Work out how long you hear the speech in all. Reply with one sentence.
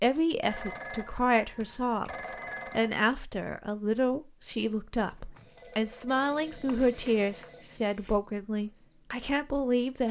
You can hear the speech for 10 seconds altogether.